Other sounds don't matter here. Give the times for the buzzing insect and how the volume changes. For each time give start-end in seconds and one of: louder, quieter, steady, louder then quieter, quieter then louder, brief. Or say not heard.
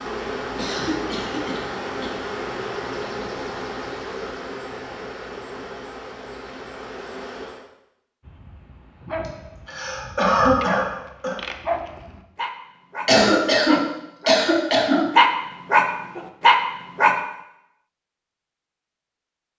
0.0-7.7 quieter.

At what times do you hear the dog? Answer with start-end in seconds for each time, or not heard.
8.2-17.1.